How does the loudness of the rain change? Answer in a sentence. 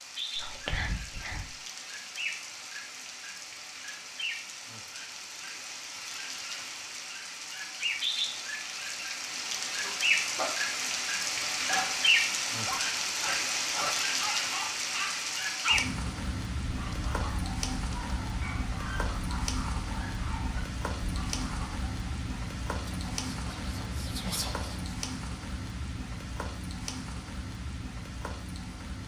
The volume of the rain goes up, then down.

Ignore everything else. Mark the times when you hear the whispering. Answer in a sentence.
The whispering can be heard from 0.3 to 1.5 s and from 22.9 to 24.9 s.